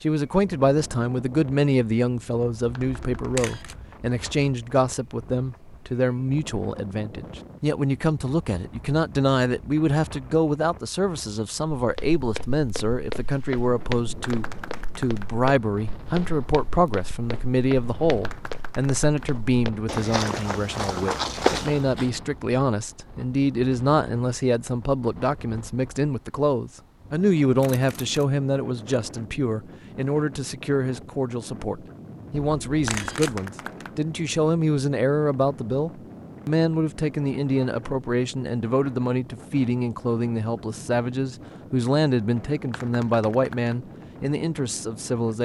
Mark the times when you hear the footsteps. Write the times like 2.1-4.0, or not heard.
11.8-22.1.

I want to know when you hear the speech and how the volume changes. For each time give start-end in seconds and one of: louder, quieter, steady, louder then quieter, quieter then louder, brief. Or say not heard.
0.0-45.4 steady.